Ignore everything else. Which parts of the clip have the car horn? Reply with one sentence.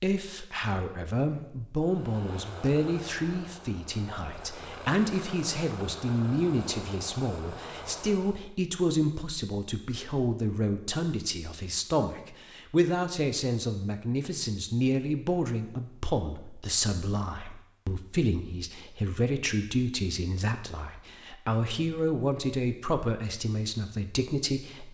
You can't hear the car horn here.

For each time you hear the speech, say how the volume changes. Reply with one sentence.
The speech can be heard from 0.0 to 24.9 s, at a steady volume.